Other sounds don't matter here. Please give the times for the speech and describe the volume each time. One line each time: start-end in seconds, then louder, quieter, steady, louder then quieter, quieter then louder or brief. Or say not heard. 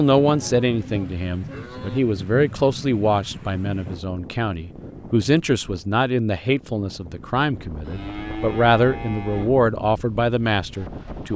0.0-11.3 steady.